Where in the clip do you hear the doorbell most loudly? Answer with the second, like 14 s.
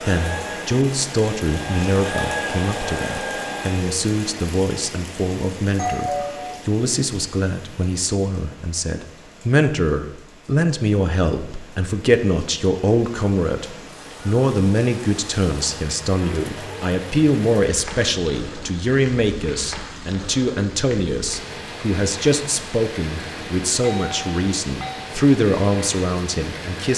6 s.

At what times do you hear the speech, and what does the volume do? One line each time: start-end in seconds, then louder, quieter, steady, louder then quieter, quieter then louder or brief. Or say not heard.
0.0-26.9 steady.